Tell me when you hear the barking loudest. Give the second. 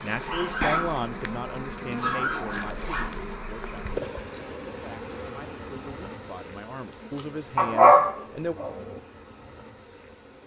8 s.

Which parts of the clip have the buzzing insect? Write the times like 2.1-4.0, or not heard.
0.0-10.4.